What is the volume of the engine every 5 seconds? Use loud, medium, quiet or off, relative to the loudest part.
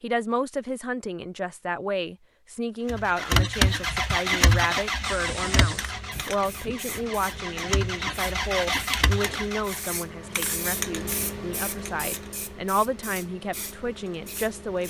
loud, medium, off.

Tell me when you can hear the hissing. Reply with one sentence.
You can hear the hissing from 5.0 to 14.8 s.